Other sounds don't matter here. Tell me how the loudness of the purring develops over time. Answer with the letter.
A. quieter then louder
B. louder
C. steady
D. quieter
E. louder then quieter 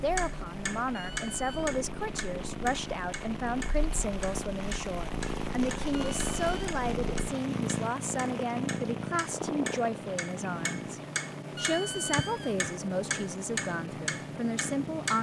E.